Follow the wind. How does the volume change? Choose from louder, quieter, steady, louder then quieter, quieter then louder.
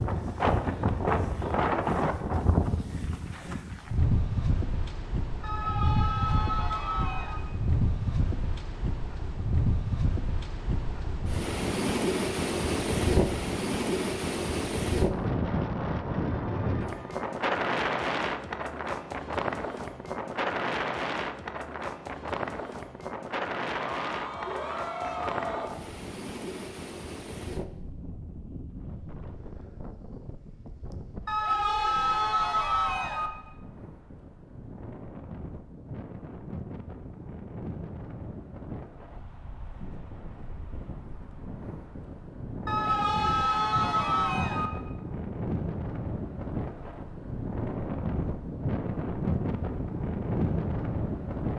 quieter then louder.